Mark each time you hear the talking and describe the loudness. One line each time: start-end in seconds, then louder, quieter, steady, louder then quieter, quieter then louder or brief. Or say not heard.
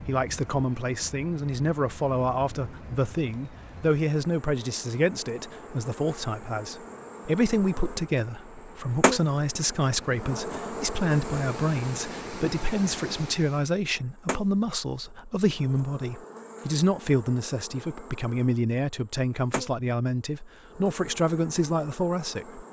0.1-22.6 steady.